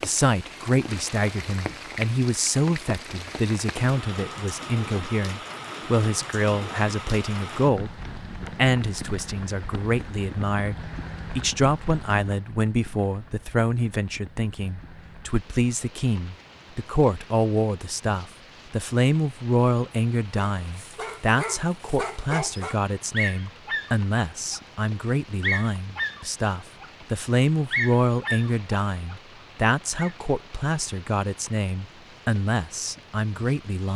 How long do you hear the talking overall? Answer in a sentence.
You can hear the talking for 34 seconds altogether.